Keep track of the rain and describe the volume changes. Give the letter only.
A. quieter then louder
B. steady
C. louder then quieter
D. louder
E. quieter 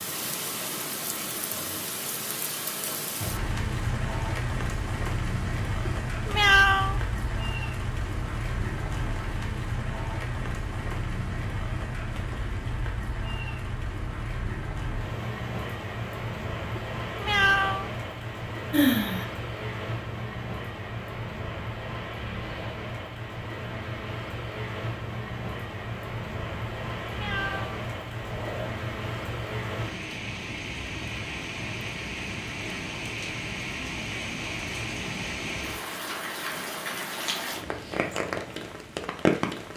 B.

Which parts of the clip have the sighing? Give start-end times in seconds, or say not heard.
18.7-19.2.